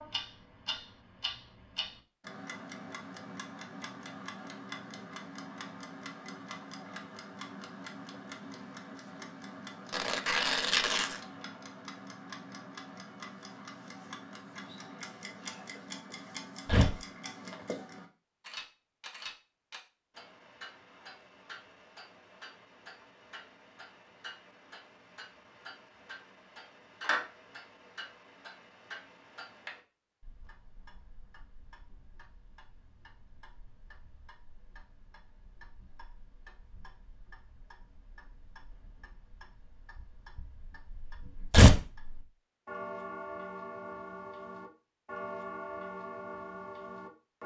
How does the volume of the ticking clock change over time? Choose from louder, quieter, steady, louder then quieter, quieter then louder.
quieter then louder.